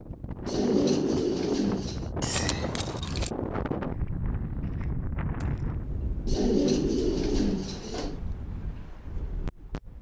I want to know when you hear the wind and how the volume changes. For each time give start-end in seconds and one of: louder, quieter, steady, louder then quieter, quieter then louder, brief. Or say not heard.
0.0-9.9 quieter.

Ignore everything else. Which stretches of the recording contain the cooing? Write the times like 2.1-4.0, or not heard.
0.5-2.1, 6.2-8.2.